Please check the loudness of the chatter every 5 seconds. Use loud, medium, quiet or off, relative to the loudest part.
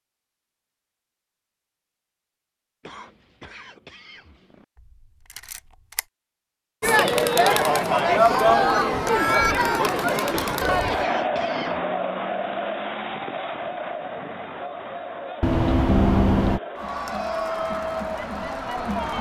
off, loud, medium, medium.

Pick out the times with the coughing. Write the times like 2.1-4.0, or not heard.
2.8-4.7, 10.3-11.8.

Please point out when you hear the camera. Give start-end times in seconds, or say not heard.
5.3-6.0, 15.4-16.6.